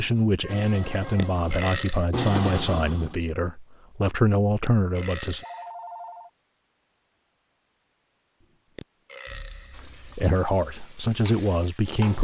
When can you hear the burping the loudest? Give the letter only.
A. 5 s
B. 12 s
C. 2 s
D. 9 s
C.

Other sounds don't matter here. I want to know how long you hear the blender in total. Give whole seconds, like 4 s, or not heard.
3 s.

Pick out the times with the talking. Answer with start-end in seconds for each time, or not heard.
0.0-5.5, 9.8-12.2.